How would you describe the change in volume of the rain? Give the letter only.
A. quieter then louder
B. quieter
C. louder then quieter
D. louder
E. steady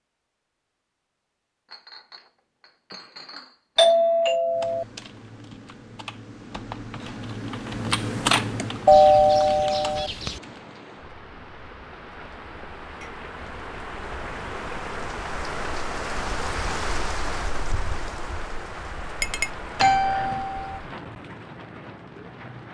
C.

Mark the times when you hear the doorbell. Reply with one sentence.
The doorbell can be heard from 3.8 to 4.8 s, from 8.8 to 10.4 s and from 19.8 to 20.8 s.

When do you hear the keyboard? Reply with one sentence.
You can hear the keyboard from 4.5 to 10.8 s.